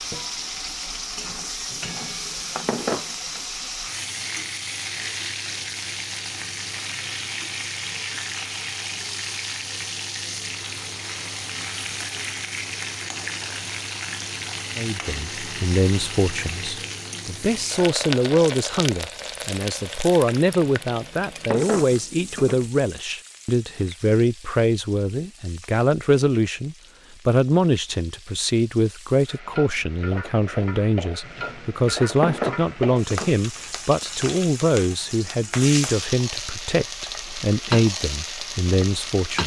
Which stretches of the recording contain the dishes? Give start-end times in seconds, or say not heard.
1.7-3.1, 20.6-22.6, 31.2-33.4.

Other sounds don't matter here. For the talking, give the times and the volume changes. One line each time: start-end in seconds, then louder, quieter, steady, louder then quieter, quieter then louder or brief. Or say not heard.
14.8-39.4 steady.